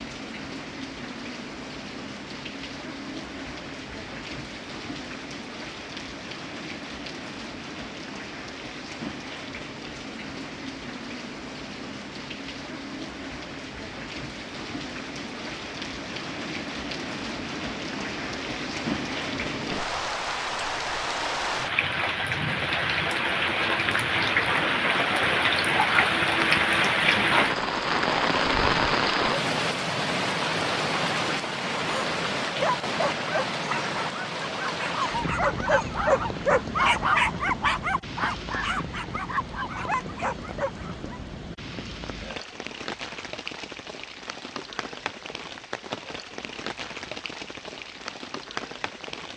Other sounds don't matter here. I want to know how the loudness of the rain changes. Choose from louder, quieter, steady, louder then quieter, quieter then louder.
louder then quieter.